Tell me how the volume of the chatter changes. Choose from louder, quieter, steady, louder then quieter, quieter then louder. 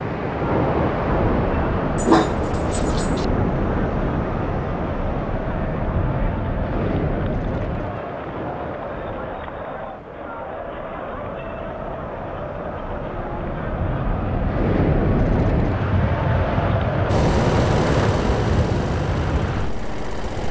steady.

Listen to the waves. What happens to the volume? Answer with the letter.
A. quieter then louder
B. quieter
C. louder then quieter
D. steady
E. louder
A.